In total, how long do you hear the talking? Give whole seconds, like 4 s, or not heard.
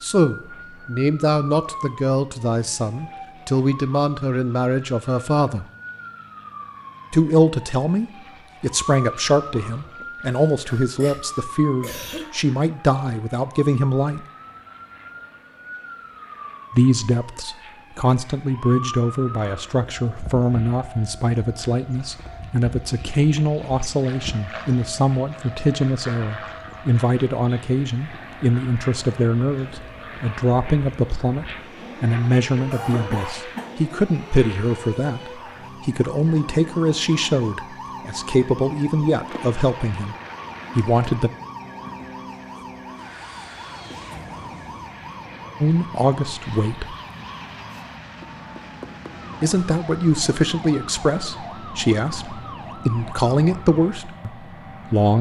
44 s.